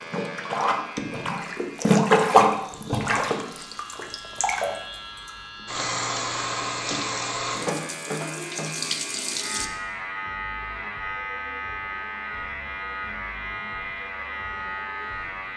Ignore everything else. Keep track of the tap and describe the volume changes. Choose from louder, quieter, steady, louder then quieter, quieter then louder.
quieter.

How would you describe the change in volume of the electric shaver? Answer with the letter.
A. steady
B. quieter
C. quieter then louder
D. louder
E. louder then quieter
D.